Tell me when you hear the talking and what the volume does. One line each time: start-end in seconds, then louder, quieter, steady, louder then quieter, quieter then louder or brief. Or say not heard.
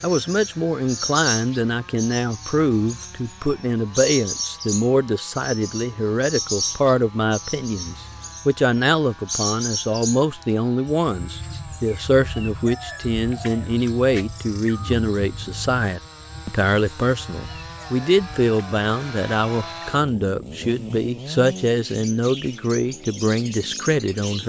0.0-24.4 steady.